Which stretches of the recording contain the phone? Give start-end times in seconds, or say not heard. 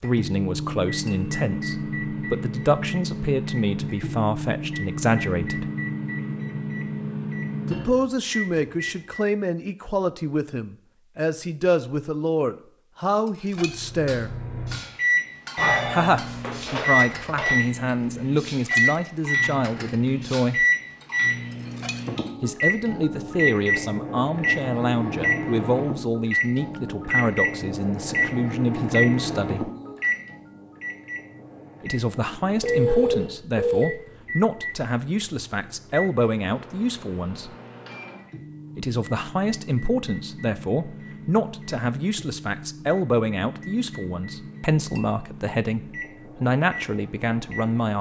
15.6-17.5, 32.6-33.9.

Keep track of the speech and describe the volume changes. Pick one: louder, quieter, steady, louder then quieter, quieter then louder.
steady.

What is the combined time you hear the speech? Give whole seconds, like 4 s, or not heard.
39 s.